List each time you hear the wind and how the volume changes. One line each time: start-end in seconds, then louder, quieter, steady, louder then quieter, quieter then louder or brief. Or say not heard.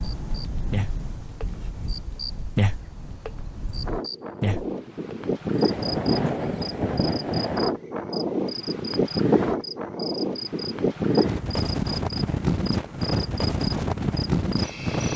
0.0-15.1 louder.